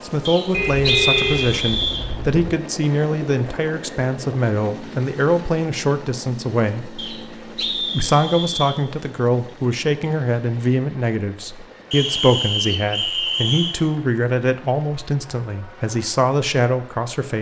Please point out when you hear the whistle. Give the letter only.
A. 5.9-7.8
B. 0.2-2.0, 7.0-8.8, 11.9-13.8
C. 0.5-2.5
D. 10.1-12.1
B.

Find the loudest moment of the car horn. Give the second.
1 s.